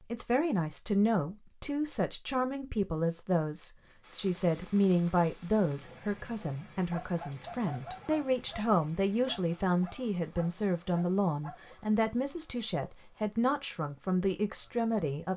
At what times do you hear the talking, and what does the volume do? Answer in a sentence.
You can hear the talking from 0.1 to 15.3 s, at a steady volume.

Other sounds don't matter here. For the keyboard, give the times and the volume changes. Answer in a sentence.
The keyboard can't be heard in this clip.